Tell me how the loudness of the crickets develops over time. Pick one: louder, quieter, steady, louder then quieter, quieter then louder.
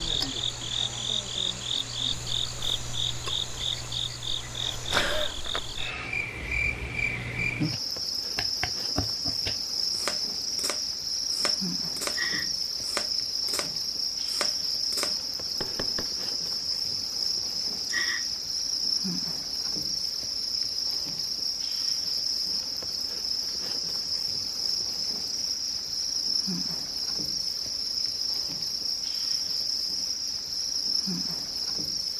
steady.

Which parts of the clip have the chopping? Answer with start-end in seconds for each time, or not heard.
7.7-12.2, 12.8-16.1.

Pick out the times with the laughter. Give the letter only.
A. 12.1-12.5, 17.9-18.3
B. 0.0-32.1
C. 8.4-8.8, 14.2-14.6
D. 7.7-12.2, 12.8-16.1
A.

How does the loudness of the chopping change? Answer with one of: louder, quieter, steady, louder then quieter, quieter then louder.
steady.